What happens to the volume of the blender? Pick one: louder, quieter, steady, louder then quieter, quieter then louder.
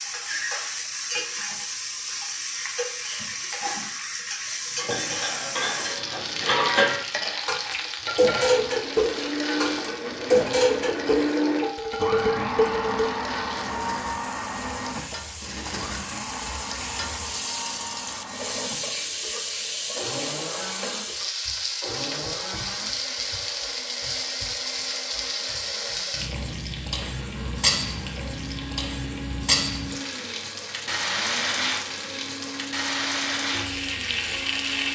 quieter.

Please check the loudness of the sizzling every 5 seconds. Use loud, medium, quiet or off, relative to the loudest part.
loud, loud, medium, loud, loud, loud, loud.